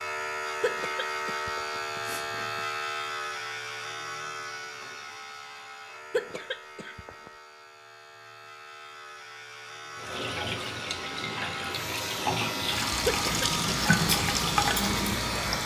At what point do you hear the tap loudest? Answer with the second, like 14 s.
14 s.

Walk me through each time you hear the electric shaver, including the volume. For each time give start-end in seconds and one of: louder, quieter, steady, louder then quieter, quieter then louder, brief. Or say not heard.
0.0-15.6 quieter then louder.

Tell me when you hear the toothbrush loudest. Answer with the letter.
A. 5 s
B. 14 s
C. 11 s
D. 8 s
B.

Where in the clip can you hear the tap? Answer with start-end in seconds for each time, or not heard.
9.9-15.6.